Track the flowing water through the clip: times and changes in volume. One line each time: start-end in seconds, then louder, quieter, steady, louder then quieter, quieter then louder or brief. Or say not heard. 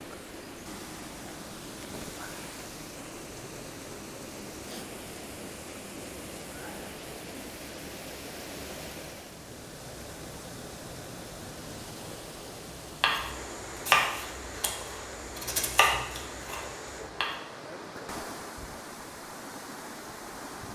0.0-20.7 steady.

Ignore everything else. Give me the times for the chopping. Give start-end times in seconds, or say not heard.
13.0-17.4.